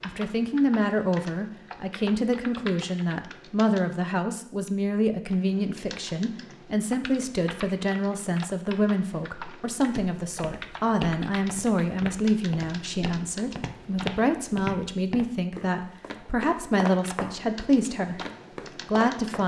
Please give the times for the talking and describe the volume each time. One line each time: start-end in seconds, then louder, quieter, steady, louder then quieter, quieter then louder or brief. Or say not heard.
0.0-18.1 steady
18.9-19.4 brief.